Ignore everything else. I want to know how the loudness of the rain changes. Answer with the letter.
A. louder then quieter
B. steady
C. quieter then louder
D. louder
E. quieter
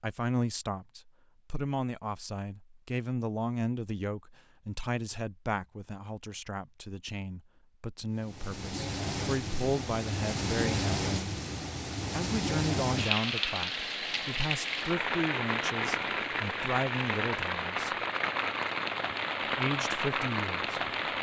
B.